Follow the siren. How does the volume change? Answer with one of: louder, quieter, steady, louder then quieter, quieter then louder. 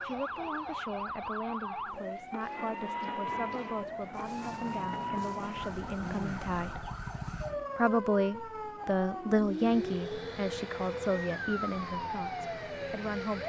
steady.